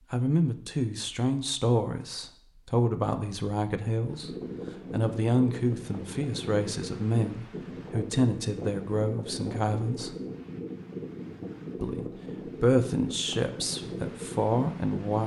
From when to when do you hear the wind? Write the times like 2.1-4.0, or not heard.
4.0-15.2.